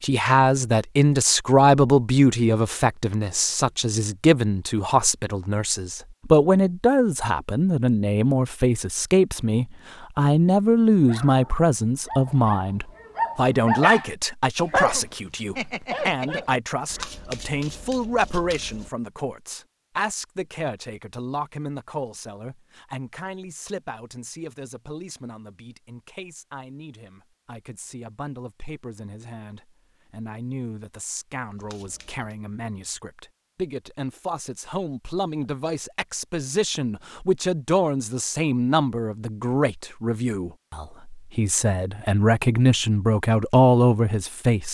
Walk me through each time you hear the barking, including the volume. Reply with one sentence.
The barking can be heard from 11.1 to 17.1 s, getting louder then quieter.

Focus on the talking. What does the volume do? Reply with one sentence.
The loudness of the talking goes down, then up.